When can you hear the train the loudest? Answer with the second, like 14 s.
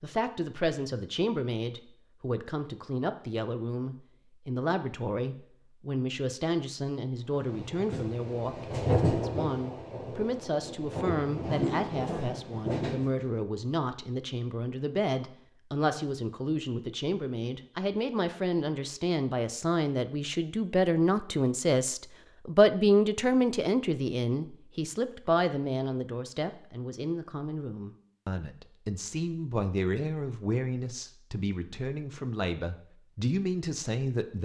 9 s.